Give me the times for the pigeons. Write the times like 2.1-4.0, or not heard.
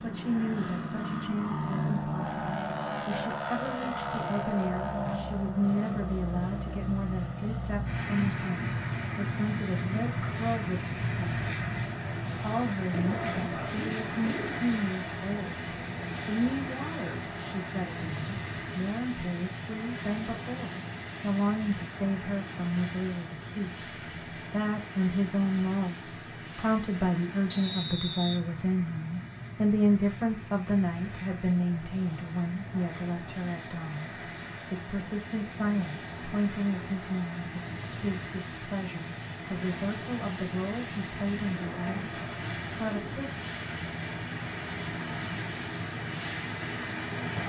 12.9-14.7, 41.5-43.2.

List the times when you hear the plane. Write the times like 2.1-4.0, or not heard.
0.0-47.4.